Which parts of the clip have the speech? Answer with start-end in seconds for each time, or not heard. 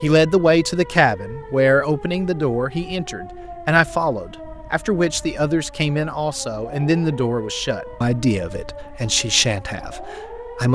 0.0-10.7.